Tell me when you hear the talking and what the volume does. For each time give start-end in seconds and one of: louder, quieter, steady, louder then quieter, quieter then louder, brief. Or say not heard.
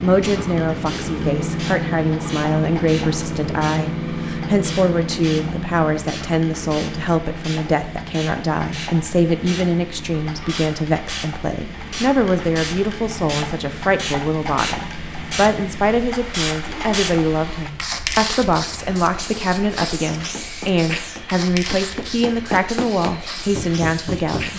0.0-24.5 steady.